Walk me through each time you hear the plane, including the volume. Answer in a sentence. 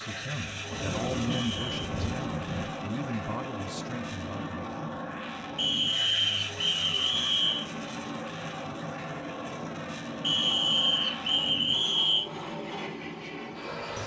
The plane can be heard from 0.0 to 14.0 s, at a steady volume.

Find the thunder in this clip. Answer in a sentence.
The thunder can be heard from 0.7 to 2.7 s.